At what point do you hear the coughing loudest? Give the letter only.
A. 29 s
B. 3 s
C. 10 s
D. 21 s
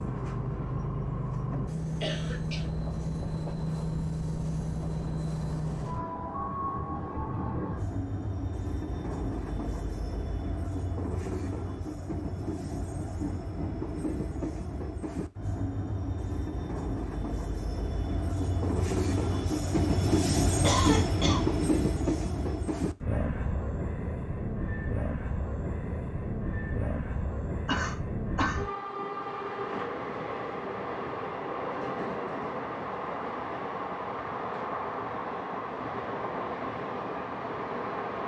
D.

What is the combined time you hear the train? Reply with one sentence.
The train can be heard for 38 seconds in total.